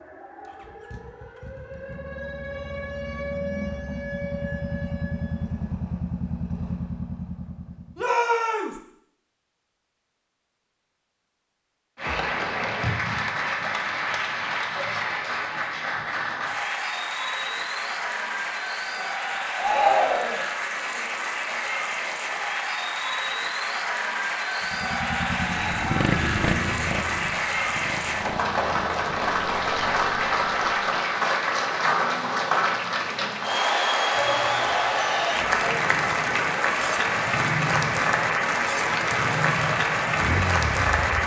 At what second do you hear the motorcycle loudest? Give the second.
26 s.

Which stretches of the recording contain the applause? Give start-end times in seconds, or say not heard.
11.9-41.2.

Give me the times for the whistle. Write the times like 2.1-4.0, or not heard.
not heard.